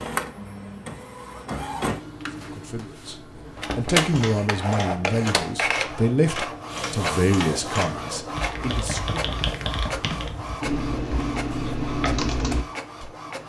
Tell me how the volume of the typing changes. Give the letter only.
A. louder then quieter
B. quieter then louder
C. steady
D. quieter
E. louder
E.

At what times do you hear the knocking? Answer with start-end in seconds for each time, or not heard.
3.3-4.1, 8.7-10.6.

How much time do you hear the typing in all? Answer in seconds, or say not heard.
9 s.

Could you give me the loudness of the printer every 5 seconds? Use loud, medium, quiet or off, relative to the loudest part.
loud, loud, medium.